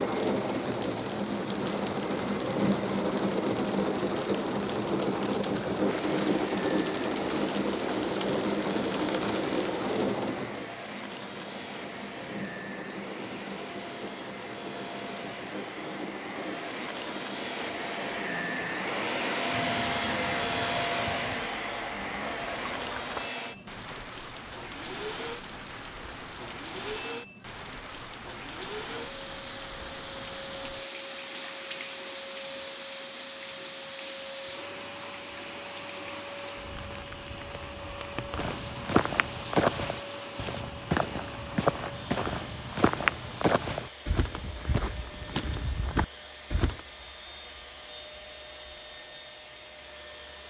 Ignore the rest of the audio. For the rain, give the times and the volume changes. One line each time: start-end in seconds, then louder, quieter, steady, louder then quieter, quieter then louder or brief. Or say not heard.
0.0-40.6 quieter.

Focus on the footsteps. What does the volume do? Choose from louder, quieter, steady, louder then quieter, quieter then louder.
quieter.